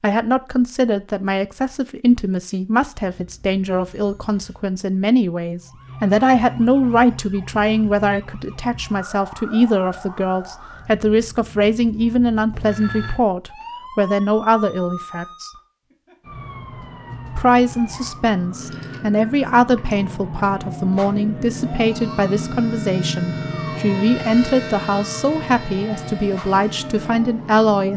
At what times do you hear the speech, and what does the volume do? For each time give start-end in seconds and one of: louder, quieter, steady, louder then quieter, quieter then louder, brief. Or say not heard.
0.0-15.5 steady
17.4-27.9 steady.